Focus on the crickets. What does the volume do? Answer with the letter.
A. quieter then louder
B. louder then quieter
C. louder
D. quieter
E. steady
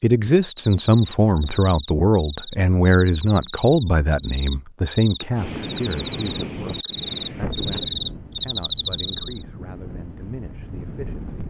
C.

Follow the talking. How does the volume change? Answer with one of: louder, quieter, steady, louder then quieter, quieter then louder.
quieter.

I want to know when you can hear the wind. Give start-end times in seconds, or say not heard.
5.3-11.4.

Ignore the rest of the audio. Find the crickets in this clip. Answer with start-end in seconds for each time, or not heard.
0.6-9.4.